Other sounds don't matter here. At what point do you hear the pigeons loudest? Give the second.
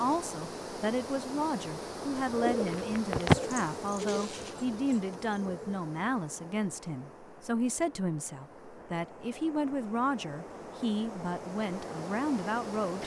3 s.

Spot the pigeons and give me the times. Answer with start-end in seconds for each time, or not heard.
2.1-5.8.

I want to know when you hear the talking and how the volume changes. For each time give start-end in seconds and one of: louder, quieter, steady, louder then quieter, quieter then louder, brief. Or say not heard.
0.0-13.0 steady.